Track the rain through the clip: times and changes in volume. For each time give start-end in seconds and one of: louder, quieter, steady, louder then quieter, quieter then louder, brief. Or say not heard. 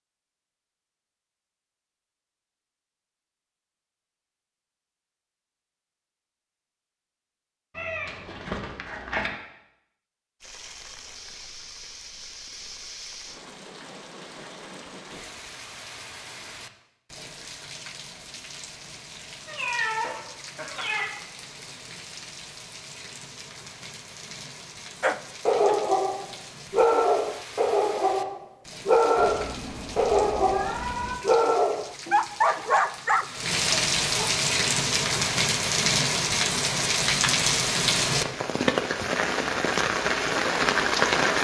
10.4-41.3 louder.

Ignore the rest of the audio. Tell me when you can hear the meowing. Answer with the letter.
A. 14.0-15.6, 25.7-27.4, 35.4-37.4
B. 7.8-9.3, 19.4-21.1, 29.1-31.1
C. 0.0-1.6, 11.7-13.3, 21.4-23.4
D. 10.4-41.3
B.